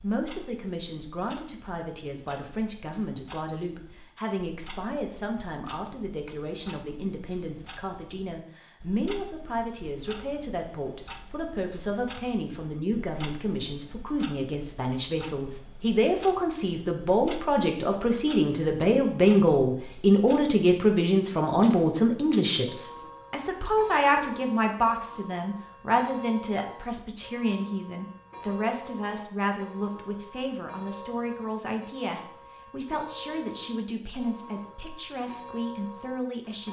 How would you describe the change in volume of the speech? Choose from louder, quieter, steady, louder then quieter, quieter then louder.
louder then quieter.